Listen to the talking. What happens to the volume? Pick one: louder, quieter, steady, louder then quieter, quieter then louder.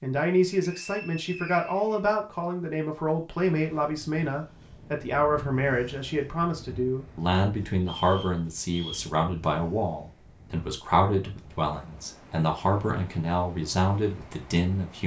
steady.